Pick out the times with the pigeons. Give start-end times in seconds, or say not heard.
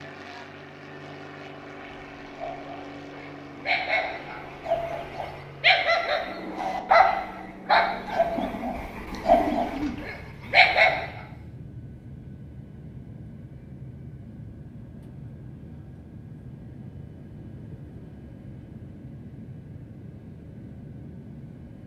8.3-10.1.